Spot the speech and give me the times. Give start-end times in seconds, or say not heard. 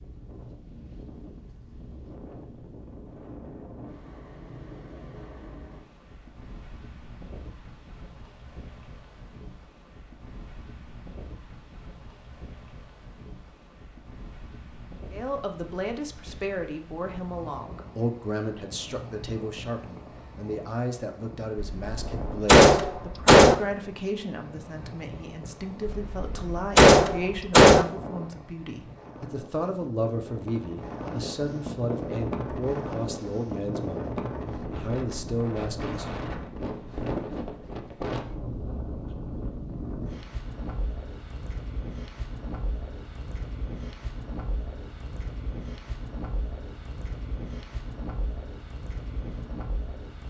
15.1-36.0.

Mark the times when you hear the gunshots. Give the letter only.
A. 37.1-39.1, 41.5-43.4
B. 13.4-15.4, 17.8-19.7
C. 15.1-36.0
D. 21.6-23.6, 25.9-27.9
D.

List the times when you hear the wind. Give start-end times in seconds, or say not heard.
0.0-50.2.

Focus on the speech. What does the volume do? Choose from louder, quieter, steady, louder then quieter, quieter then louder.
steady.